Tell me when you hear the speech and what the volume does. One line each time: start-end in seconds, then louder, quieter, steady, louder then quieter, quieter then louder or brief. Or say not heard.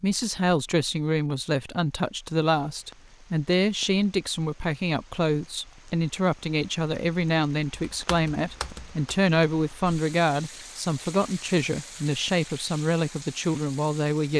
0.0-14.3 steady.